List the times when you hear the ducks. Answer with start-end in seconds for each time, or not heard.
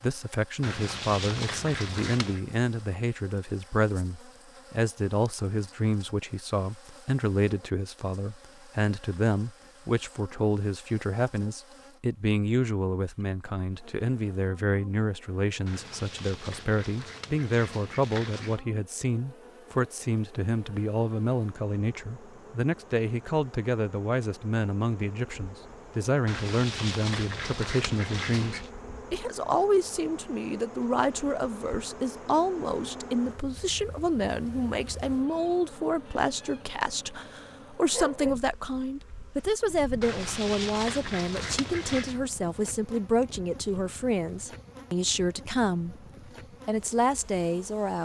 0.6-2.4, 15.7-18.6, 26.2-28.7, 40.0-42.2.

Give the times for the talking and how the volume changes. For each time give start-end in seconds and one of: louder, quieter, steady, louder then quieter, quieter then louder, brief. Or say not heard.
0.0-46.0 steady
46.6-48.0 brief.